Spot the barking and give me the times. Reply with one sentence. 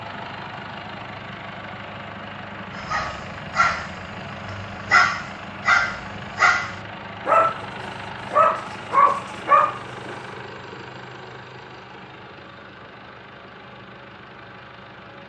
The barking can be heard from 2.8 to 10.2 s.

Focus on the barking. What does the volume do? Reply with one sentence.
The loudness of the barking goes up.